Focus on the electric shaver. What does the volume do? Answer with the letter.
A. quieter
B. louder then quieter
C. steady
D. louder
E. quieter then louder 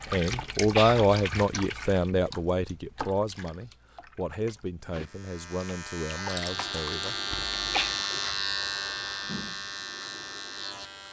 B.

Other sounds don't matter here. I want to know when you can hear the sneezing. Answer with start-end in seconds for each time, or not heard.
0.3-1.1, 7.3-8.0.